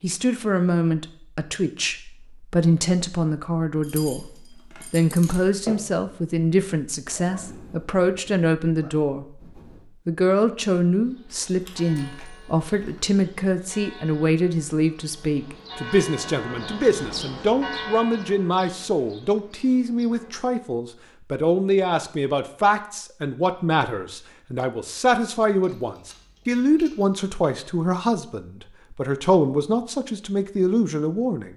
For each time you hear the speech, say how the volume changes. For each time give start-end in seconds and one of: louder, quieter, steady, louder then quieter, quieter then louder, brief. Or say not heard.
0.0-9.4 steady
10.1-31.5 steady.